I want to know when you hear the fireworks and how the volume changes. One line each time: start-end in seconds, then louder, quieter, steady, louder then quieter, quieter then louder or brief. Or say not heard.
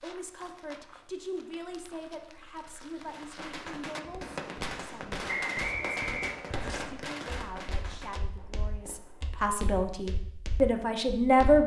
3.0-9.4 quieter.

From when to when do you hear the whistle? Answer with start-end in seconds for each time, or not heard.
5.2-6.8.